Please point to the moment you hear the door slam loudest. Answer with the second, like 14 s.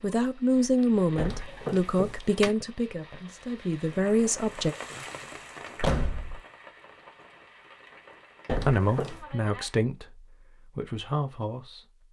6 s.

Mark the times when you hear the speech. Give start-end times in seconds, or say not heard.
0.0-4.8, 8.7-12.0.